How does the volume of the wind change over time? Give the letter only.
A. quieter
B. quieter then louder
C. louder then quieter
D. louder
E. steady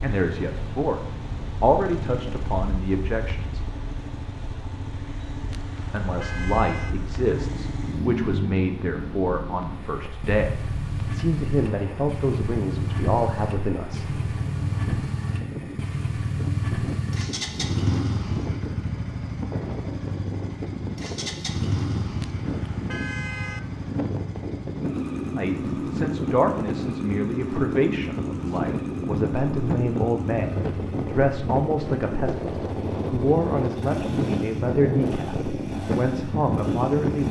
D.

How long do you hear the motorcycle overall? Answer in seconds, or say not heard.
37 s.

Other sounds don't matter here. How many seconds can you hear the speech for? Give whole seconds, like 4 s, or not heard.
24 s.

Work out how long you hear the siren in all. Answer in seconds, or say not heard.
not heard.